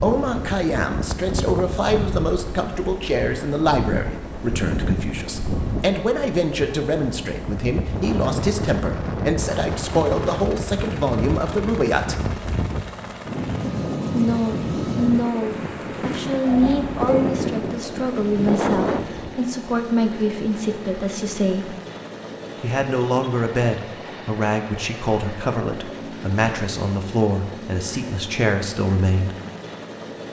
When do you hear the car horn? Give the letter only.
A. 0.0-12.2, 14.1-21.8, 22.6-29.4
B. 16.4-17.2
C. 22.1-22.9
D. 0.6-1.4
B.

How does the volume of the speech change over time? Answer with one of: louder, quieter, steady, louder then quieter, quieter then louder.
steady.